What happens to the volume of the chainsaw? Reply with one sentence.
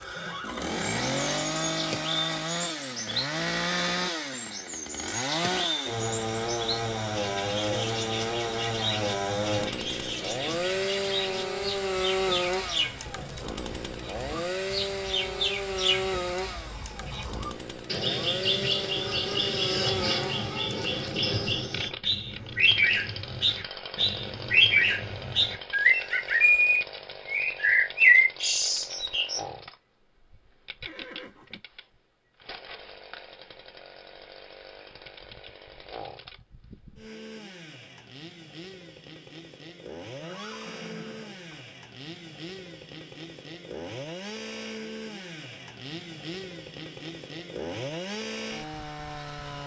The loudness of the chainsaw goes down, then up.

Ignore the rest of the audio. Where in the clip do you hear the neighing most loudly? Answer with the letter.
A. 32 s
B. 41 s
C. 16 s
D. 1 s
D.